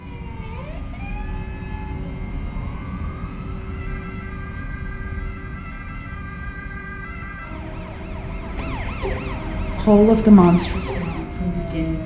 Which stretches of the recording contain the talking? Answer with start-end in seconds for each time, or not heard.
9.8-12.0.